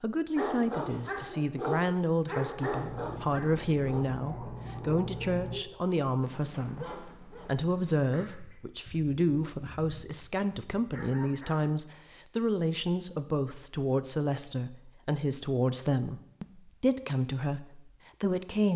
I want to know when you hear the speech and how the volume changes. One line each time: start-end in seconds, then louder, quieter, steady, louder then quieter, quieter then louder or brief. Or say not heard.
0.0-18.7 steady.